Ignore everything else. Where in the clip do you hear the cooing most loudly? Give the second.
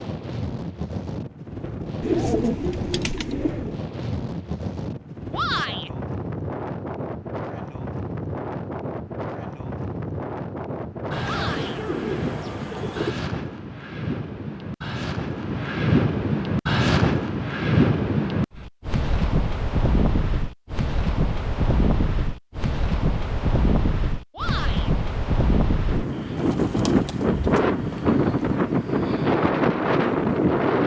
2 s.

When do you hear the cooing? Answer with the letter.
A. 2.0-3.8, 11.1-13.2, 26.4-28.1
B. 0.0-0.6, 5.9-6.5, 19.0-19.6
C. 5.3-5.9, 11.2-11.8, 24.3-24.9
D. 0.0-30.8
A.